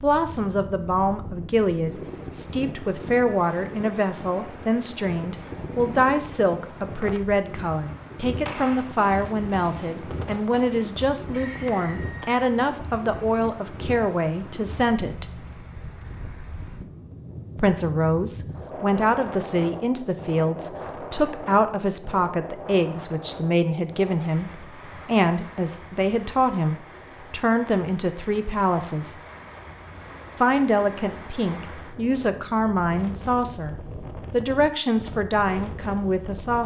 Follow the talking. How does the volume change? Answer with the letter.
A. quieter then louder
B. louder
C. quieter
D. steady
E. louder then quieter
D.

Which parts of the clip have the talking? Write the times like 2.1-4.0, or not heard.
0.0-15.2, 17.6-29.1, 30.4-36.6.